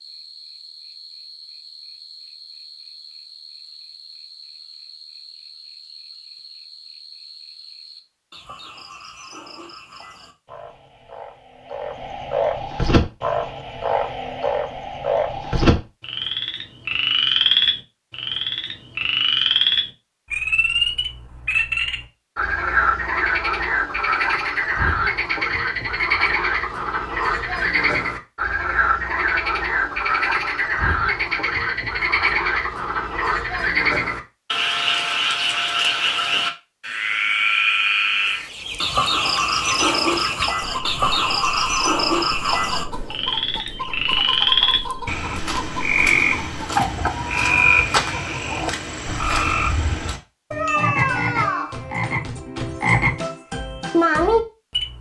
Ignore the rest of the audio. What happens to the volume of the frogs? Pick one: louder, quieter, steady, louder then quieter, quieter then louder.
louder.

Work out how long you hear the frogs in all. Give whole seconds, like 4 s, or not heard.
55 s.